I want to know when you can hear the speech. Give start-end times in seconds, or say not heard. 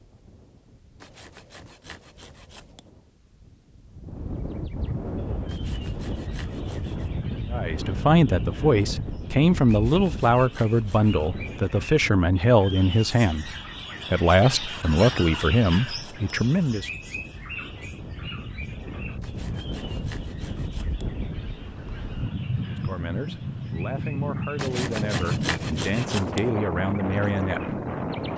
7.5-13.5, 14.1-16.9, 22.6-27.8.